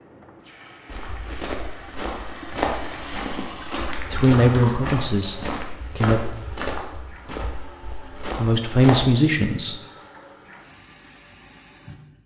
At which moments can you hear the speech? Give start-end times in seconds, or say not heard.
4.1-6.2, 8.2-9.8.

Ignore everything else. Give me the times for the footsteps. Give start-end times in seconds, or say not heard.
0.8-9.1.